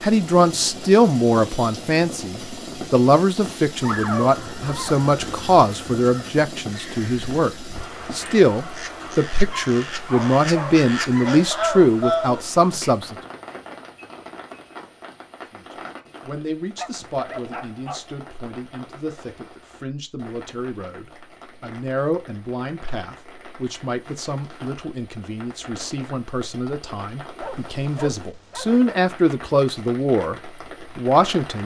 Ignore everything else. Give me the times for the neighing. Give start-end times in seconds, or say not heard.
not heard.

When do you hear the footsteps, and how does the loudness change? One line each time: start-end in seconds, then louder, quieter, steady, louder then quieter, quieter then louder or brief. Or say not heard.
not heard.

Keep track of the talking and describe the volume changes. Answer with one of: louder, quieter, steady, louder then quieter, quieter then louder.
quieter then louder.